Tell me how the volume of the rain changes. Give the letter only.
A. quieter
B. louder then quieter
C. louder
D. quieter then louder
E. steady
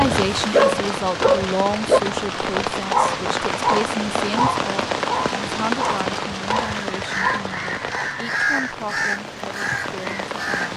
A.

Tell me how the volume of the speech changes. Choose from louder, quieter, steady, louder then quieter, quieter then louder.
quieter.